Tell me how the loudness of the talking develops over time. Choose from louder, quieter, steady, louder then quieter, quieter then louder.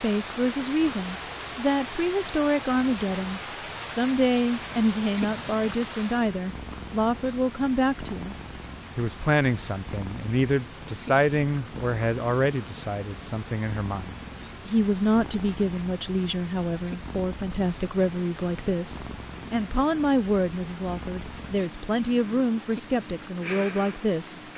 steady.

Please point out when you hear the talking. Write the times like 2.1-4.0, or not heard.
0.0-24.4.